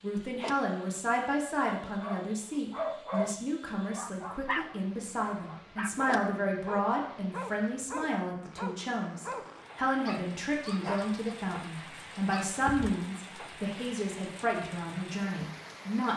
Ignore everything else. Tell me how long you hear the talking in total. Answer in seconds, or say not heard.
16 s.